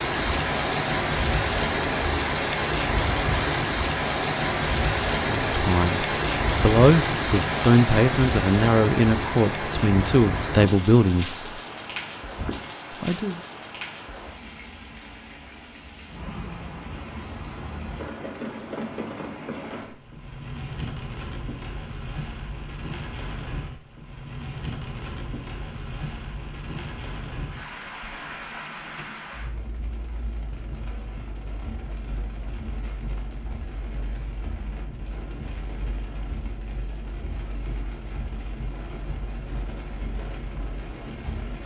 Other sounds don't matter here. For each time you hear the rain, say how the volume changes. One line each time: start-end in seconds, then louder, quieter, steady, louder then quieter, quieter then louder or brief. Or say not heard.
0.0-41.6 quieter.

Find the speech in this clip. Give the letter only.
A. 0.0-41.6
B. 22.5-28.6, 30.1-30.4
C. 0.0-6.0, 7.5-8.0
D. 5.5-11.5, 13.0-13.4
D.